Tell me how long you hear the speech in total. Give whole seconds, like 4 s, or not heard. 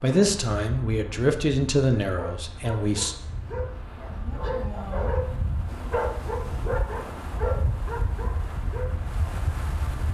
3 s.